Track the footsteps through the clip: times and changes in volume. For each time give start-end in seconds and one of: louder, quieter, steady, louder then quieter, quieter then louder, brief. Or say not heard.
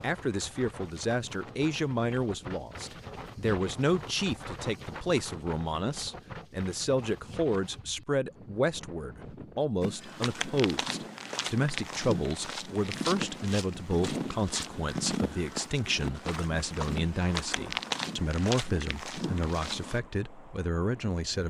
9.8-20.0 steady.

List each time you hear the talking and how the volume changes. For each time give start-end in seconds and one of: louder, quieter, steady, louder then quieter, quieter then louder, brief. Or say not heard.
0.0-21.4 steady.